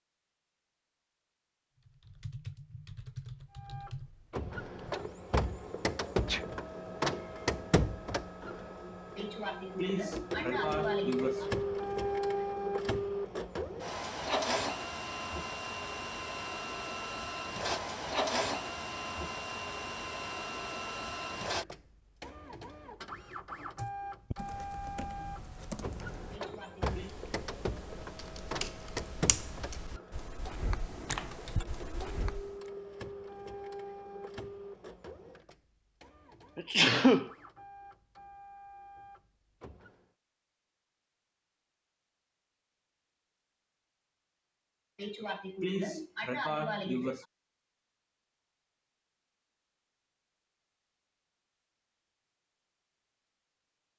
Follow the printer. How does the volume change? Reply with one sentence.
The loudness of the printer goes down.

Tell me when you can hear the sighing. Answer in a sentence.
You can hear the sighing from 9.2 to 11.5 s, from 26.3 to 27.1 s and from 45.0 to 47.2 s.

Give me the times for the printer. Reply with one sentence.
The printer can be heard from 3.5 to 40.0 s.